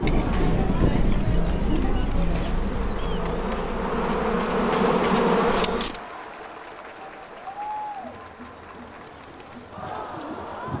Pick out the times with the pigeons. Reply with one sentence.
You can hear the pigeons from 0.0 to 3.0 s and from 8.7 to 10.7 s.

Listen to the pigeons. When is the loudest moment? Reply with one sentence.
The loudest moment of the pigeons is at 1 second.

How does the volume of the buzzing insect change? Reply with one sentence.
The volume of the buzzing insect goes up.